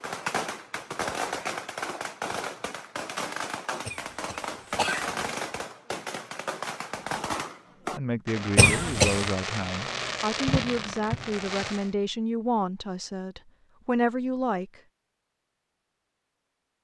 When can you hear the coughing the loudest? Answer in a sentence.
The loudest moment of the coughing is at 9 seconds.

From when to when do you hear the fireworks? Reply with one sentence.
You can hear the fireworks from 0.0 to 11.9 s.